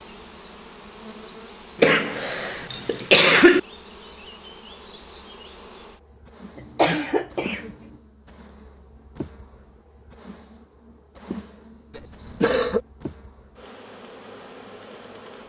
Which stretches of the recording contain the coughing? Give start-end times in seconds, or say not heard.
1.8-3.6, 6.8-7.7, 11.9-12.8.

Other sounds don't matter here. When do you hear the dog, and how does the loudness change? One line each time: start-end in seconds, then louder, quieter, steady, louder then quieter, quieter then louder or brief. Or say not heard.
not heard.